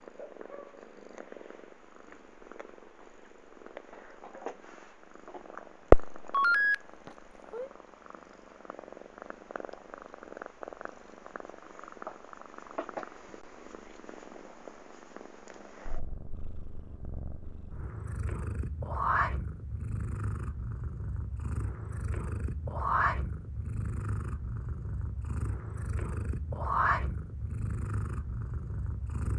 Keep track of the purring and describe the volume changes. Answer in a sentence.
The loudness of the purring goes down, then up.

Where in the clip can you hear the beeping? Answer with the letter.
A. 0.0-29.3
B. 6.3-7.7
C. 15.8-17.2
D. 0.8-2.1
B.